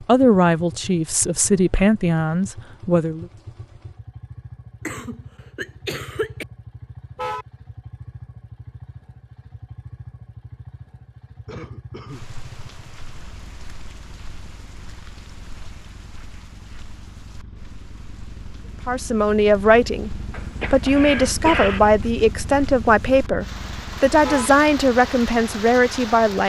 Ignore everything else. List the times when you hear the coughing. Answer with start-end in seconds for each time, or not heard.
4.8-6.5, 11.4-12.2, 20.3-21.9.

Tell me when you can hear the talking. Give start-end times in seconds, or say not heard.
0.1-3.2, 18.9-26.4.